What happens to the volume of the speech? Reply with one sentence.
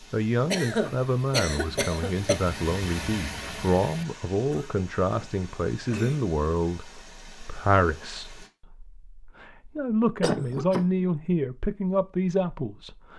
The loudness of the speech stays about the same.